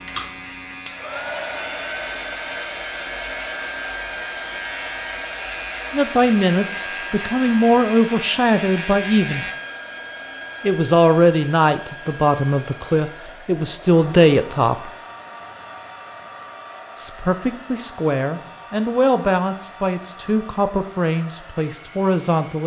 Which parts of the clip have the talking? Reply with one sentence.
You can hear the talking from 5.9 to 9.4 s, from 10.6 to 14.9 s and from 16.9 to 22.6 s.